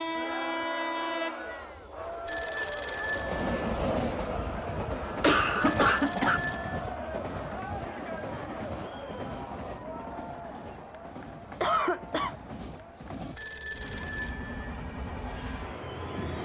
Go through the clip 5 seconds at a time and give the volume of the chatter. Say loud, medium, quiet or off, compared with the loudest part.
loud, loud, medium, medium.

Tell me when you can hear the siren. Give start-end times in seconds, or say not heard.
not heard.